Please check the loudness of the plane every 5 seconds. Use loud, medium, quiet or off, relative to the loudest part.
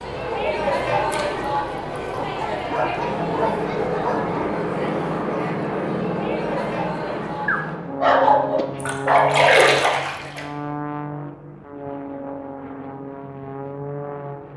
loud, loud, medium.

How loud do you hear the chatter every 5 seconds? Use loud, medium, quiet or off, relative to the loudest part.
loud, medium, off.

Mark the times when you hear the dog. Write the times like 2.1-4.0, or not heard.
2.1-4.4, 7.5-9.4.